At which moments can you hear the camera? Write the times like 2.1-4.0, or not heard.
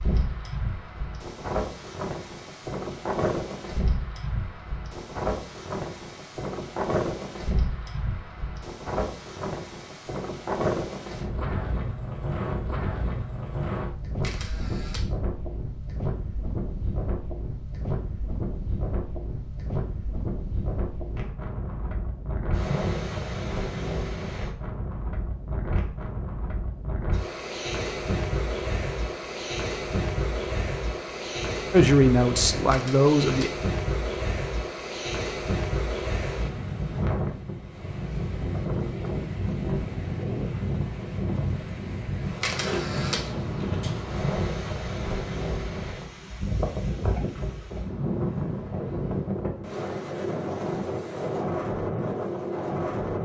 14.2-15.1, 32.7-33.5, 42.4-43.2.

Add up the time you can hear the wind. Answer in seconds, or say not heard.
53 s.